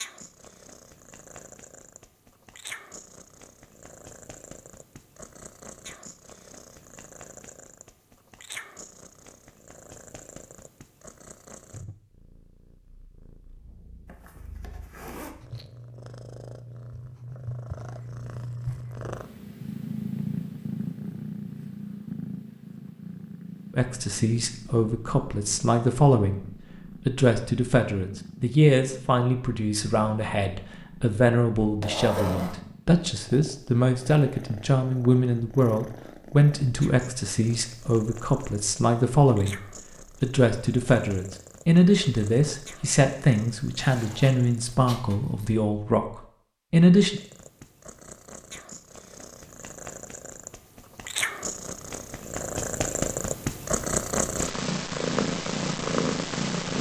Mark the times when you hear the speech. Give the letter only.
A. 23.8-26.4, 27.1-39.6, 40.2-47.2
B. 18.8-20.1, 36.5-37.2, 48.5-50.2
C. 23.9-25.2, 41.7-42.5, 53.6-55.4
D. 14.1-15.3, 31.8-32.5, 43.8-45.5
A.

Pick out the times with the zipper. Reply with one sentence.
You can hear the zipper from 14.1 to 15.3 s, from 31.8 to 32.5 s and from 43.8 to 45.5 s.